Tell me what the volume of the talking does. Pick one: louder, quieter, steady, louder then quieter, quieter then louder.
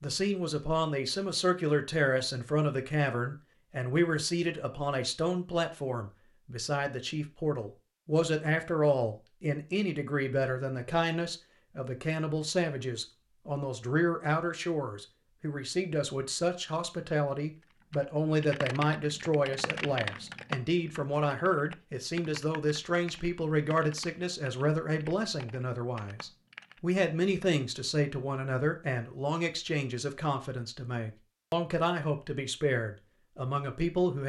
steady.